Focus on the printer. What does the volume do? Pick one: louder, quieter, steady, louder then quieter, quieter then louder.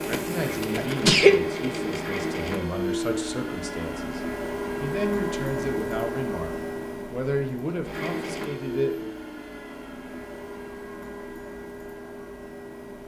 quieter.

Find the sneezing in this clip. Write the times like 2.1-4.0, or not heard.
0.8-1.4.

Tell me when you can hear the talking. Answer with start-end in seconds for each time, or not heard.
0.0-4.2, 4.8-9.1.